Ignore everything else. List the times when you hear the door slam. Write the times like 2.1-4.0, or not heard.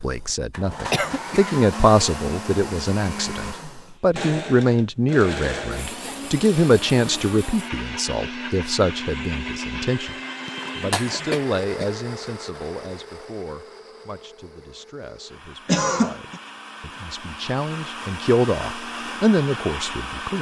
not heard.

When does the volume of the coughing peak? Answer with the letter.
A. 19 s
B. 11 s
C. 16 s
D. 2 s
C.